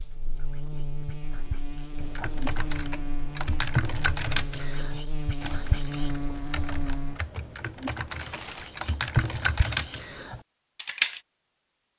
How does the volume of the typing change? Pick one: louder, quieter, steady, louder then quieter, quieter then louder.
quieter then louder.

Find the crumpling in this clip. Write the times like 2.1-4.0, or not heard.
8.1-8.8.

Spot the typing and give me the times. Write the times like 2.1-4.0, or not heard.
1.9-11.2.